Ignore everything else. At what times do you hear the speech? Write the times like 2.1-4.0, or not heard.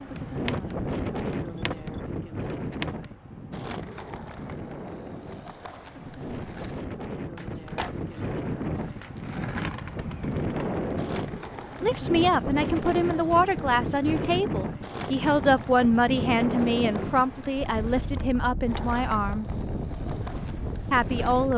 11.8-19.6, 20.9-21.5.